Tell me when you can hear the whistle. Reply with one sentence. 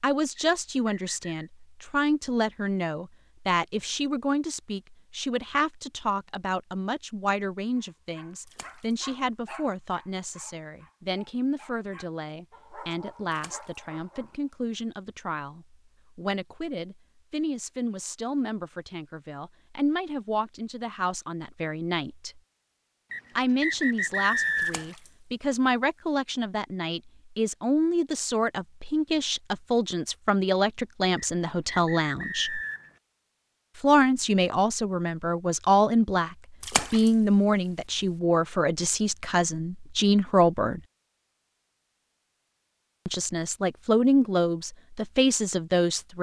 You can hear the whistle from 0.3 to 1.4 s, from 23.1 to 24.9 s and from 31.1 to 32.9 s.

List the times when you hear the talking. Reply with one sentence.
You can hear the talking from 0.0 to 22.4 s, from 23.4 to 32.6 s, from 33.8 to 40.8 s and from 43.0 to 46.1 s.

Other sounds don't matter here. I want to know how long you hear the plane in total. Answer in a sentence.
You can't hear the plane here.